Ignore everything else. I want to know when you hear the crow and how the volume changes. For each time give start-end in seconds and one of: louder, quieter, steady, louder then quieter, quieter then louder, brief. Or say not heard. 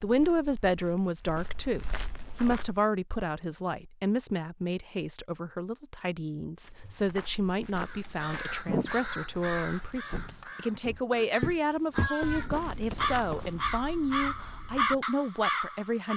7.8-16.1 quieter then louder.